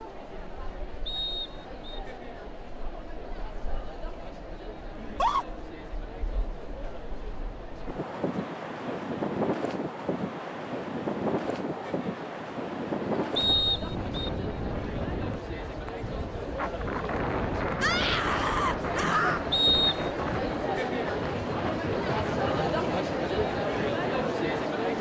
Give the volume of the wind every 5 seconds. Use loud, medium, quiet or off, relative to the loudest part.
quiet, loud, loud, loud, loud.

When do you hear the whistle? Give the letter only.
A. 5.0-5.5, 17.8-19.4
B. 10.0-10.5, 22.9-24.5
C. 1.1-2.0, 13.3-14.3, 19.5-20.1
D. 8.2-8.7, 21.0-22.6
C.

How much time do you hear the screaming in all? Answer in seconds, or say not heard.
2 s.